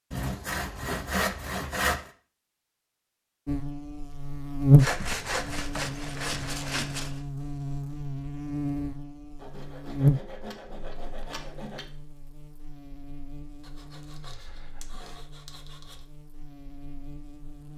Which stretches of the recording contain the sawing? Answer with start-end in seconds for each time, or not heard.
0.1-2.1, 4.8-7.2, 9.4-11.8, 13.6-16.1.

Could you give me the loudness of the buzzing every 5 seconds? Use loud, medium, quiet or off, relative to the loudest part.
loud, quiet, medium, quiet.